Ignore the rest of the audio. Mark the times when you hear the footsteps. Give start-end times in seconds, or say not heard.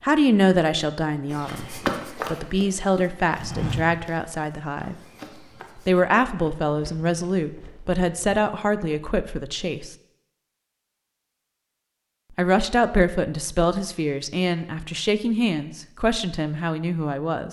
1.3-8.4.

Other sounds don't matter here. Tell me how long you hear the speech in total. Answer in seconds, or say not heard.
14 s.